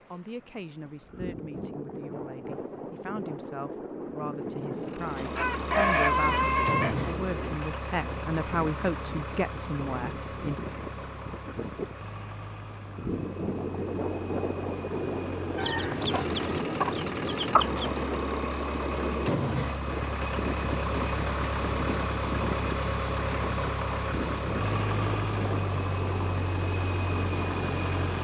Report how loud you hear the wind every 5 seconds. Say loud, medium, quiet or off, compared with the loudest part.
medium, medium, loud, loud, loud, loud.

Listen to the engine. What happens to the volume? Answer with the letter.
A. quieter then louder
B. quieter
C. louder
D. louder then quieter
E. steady
A.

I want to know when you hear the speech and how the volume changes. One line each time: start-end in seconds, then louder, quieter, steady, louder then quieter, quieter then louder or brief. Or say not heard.
0.1-10.6 louder.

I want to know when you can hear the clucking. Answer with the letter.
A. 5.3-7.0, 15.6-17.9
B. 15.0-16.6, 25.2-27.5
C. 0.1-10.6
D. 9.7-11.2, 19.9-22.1
A.